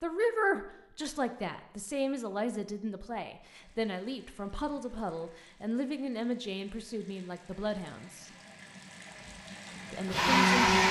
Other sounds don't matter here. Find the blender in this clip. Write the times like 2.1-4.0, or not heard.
9.7-10.8.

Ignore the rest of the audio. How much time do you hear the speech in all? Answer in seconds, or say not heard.
9 s.